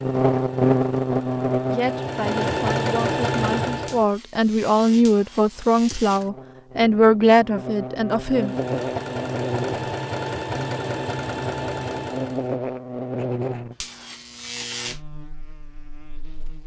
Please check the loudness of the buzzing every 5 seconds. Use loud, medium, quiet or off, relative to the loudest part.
loud, medium, medium, quiet.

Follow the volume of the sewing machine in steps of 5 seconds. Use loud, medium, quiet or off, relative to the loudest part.
loud, loud, loud, off.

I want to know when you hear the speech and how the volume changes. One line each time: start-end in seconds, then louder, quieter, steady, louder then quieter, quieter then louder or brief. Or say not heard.
1.7-8.6 louder.